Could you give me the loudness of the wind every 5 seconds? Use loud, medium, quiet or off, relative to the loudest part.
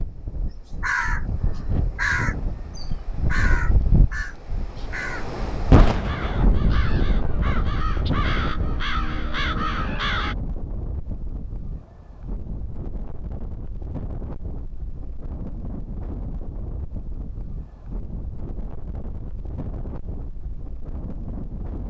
loud, loud, medium, medium, medium.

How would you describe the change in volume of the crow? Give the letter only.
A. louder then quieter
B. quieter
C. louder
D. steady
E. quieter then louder
E.